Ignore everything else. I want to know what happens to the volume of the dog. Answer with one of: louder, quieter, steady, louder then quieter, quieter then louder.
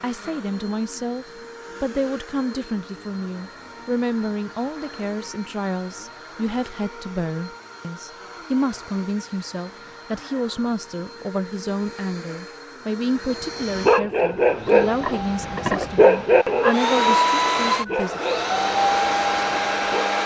quieter.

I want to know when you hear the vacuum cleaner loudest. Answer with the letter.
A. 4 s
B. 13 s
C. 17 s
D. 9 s
C.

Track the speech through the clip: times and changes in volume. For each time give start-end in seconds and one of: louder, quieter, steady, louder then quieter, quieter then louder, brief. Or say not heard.
0.0-18.2 steady.